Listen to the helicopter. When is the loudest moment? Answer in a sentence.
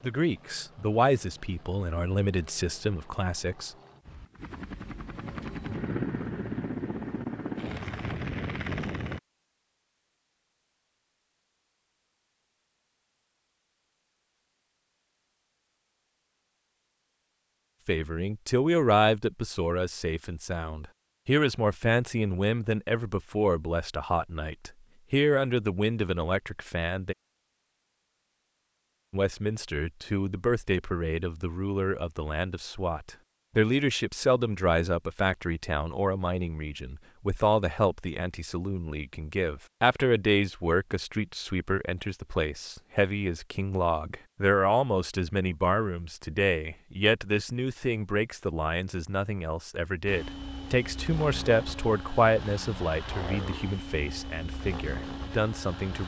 The loudest moment of the helicopter is at 6 seconds.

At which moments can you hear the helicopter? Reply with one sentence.
The helicopter can be heard from 0.0 to 9.2 s and from 50.0 to 56.0 s.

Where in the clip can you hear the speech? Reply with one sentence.
The speech can be heard from 0.0 to 3.7 s, from 17.9 to 27.1 s and from 29.1 to 56.0 s.